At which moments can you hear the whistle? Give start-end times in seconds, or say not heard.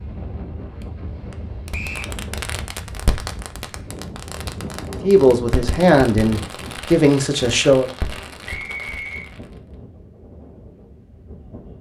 1.7-2.1, 8.4-9.2.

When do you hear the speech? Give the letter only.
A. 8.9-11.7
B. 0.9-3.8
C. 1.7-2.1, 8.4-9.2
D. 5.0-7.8
D.